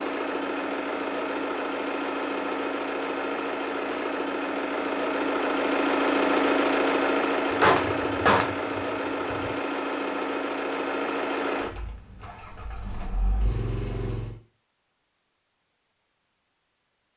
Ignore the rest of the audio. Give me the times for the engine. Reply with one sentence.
The engine can be heard from 0.0 to 14.3 s.